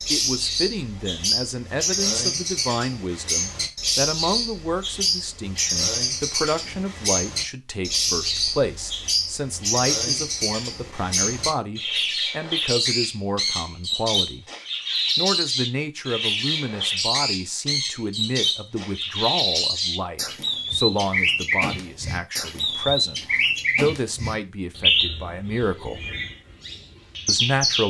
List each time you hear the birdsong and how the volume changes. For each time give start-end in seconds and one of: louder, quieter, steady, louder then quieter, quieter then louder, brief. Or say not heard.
0.0-27.8 steady.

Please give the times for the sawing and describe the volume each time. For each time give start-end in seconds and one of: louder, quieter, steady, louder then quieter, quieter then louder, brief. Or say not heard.
not heard.